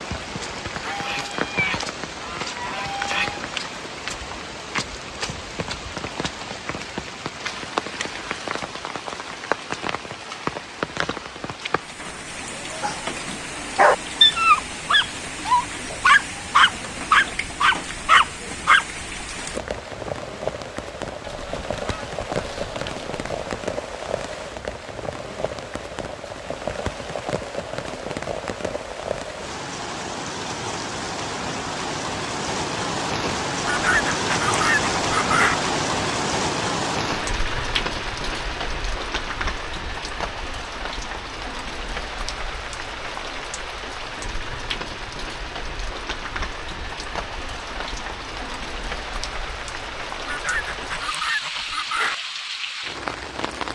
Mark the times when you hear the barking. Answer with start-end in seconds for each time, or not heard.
12.8-18.9.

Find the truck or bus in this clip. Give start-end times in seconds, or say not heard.
not heard.